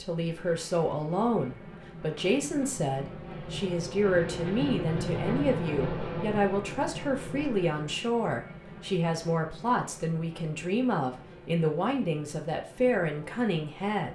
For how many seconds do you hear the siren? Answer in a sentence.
You can't hear the siren here.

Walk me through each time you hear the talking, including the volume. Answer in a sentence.
You can hear the talking from 0.0 to 14.1 s, at a steady volume.